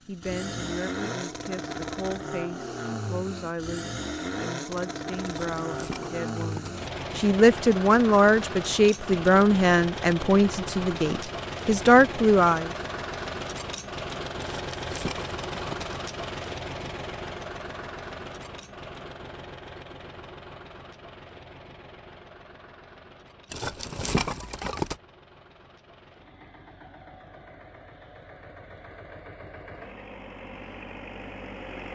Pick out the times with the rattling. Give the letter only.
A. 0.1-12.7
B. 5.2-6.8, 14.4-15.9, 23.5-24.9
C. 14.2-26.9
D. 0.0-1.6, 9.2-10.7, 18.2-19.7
B.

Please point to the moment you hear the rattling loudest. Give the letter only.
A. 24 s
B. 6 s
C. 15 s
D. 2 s
A.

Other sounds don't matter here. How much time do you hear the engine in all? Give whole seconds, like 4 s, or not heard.
32 s.